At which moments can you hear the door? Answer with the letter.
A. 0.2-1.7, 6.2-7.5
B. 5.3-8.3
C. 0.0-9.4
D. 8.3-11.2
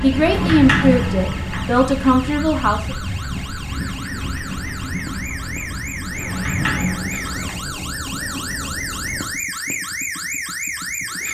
A.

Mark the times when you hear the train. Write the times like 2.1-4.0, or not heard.
0.0-9.4.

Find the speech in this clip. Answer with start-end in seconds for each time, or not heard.
0.0-3.0.